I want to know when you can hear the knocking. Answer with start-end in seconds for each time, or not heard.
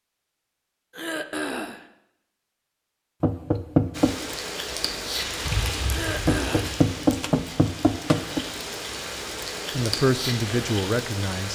3.2-4.2, 6.2-8.4.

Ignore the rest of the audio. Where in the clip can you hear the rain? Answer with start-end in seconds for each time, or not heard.
3.9-11.5.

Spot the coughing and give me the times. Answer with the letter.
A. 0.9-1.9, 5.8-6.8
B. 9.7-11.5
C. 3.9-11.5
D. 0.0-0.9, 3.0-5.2
A.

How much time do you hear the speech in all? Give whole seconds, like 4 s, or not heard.
2 s.